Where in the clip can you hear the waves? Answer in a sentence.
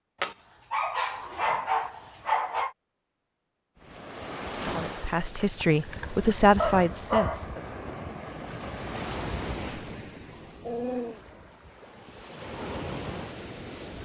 The waves can be heard from 3.8 to 14.0 s.